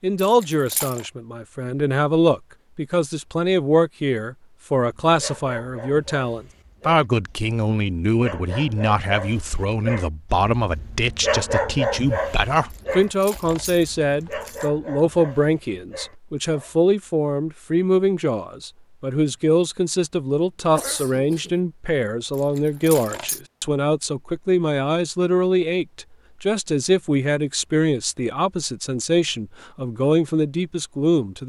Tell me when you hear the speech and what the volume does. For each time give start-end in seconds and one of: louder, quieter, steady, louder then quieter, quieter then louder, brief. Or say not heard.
0.0-31.4 steady.